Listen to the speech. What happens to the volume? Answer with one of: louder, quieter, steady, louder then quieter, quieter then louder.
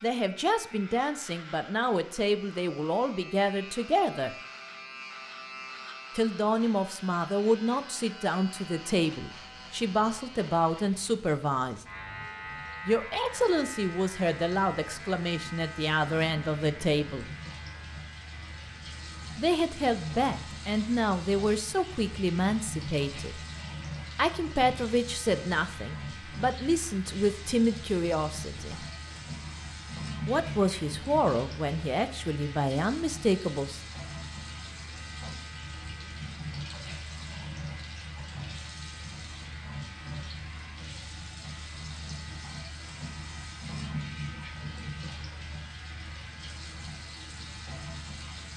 steady.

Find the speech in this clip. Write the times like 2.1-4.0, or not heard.
0.0-4.3, 6.2-11.8, 12.8-17.2, 19.4-23.4, 24.1-28.9, 30.2-33.8.